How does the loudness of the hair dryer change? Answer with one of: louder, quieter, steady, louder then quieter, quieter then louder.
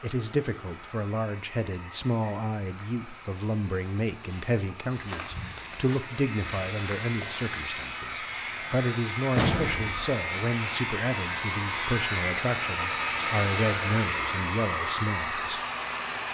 louder.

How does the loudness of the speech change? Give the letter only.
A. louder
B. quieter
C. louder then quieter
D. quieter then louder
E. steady
E.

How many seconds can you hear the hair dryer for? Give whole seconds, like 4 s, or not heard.
16 s.